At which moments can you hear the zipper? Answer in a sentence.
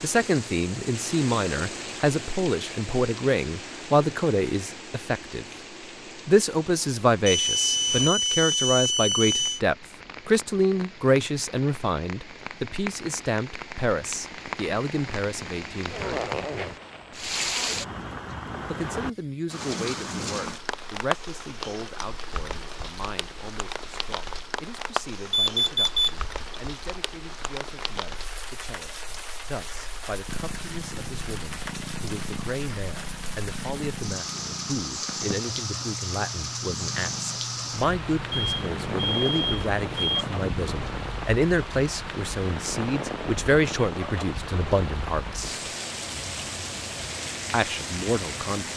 The zipper can be heard from 15.9 to 17.4 s.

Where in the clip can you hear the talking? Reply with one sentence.
The talking can be heard from 0.0 to 5.5 s, from 6.2 to 16.2 s, from 18.6 to 45.7 s and from 47.5 to 48.7 s.